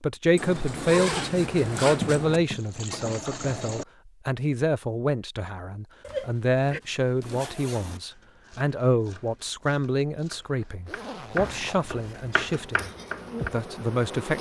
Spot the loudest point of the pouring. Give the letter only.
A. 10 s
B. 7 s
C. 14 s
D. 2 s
D.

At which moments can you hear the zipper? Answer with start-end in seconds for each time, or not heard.
0.3-2.4, 6.0-8.0, 10.8-11.9.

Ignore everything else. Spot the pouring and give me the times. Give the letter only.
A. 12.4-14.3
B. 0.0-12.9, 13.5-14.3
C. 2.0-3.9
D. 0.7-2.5
C.